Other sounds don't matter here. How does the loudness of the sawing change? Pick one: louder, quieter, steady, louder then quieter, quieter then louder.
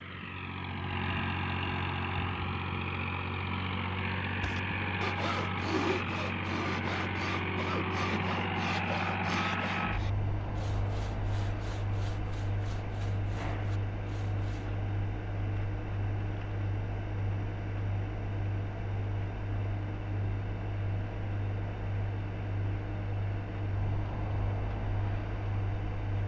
quieter.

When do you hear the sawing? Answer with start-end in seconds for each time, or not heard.
4.4-14.7.